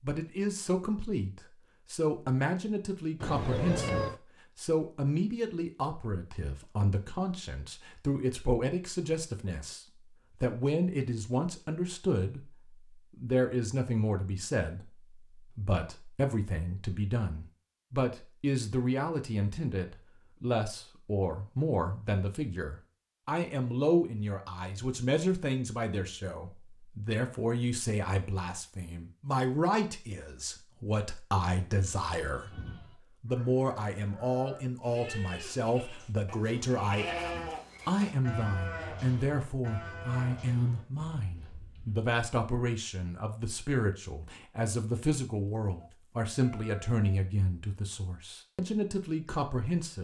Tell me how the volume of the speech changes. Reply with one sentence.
The loudness of the speech stays about the same.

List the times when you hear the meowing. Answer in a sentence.
The meowing can be heard from 3.2 to 4.2 s and from 45.8 to 47.2 s.